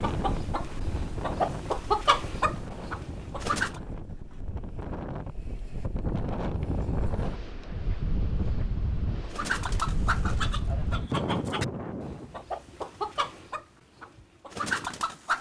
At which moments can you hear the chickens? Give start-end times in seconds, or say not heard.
0.0-3.7, 9.2-15.3.